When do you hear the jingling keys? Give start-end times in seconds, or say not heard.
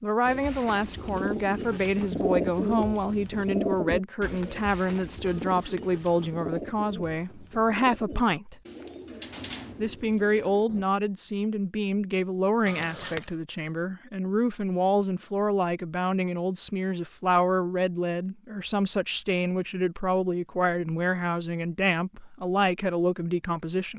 5.2-6.1, 12.7-13.4.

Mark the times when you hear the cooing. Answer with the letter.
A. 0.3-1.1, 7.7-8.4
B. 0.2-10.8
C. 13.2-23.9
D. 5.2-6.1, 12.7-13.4
B.